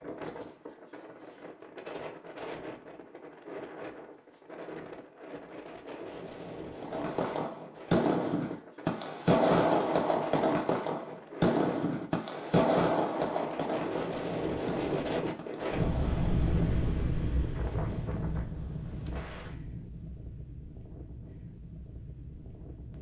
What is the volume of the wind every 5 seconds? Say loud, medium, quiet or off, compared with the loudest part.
medium, medium, loud, loud, quiet.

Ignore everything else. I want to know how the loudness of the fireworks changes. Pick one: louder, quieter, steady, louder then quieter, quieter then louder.
quieter.